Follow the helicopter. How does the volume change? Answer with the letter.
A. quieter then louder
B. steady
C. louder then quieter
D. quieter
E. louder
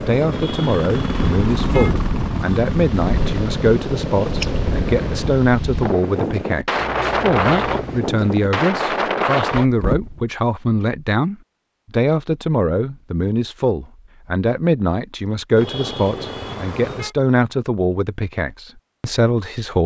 B.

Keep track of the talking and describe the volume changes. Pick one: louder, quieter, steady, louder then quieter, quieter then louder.
steady.